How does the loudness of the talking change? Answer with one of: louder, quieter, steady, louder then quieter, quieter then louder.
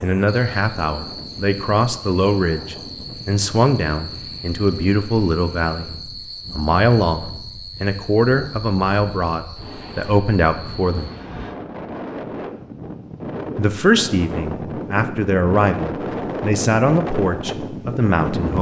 steady.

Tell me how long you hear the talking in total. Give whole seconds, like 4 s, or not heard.
16 s.